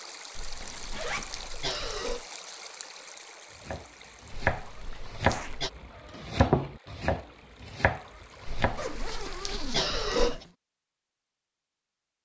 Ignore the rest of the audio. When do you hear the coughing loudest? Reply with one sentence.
The volume of the coughing peaks at 10 seconds.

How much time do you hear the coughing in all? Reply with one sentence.
You can hear the coughing for 5 seconds altogether.